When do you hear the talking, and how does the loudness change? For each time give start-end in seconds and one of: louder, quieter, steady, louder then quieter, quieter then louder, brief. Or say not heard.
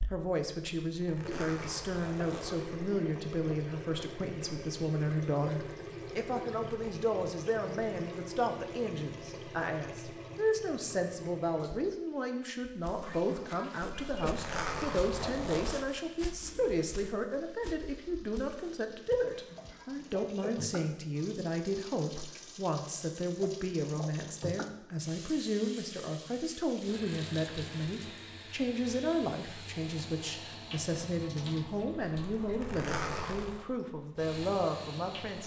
0.1-35.4 steady.